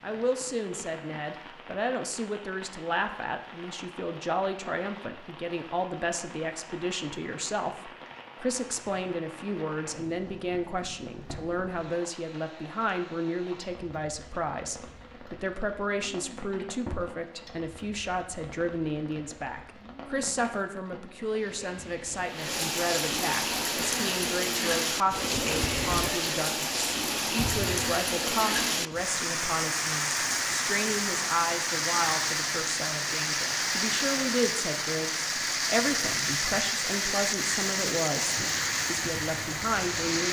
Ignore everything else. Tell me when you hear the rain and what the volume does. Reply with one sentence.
The rain can be heard from 0.0 to 40.2 s, getting louder.